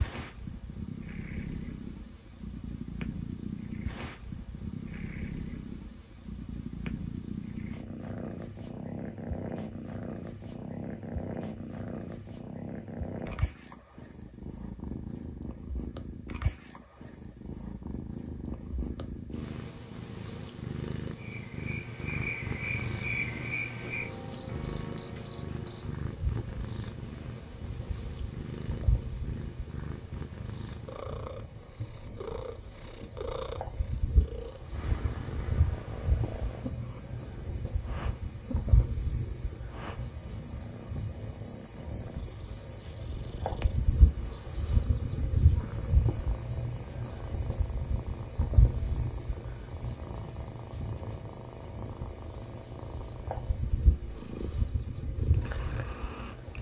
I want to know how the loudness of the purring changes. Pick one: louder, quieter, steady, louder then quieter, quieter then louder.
quieter.